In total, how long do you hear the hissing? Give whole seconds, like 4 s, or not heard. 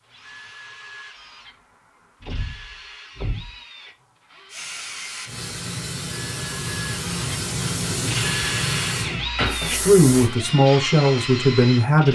6 s.